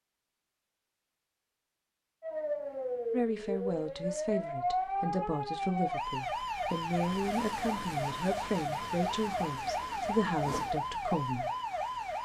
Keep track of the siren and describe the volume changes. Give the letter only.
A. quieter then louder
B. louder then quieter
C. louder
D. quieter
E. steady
E.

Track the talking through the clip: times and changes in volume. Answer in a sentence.
You can hear the talking from 3.1 to 11.5 s, at a steady volume.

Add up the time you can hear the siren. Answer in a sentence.
The siren can be heard for 10 seconds in total.